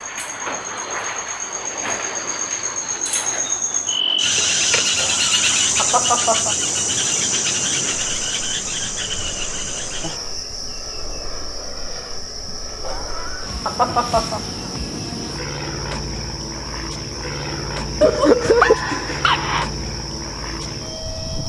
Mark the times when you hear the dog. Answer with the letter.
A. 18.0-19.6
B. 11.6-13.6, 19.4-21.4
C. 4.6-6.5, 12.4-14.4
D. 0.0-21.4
A.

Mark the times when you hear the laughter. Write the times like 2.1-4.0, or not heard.
4.6-6.5, 12.4-14.4.